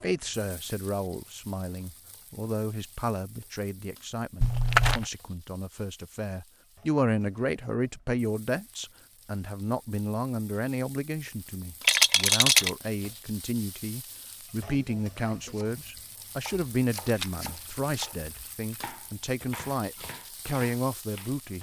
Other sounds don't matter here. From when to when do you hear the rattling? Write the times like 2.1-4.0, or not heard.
4.4-5.0, 11.8-12.7, 17.1-18.9.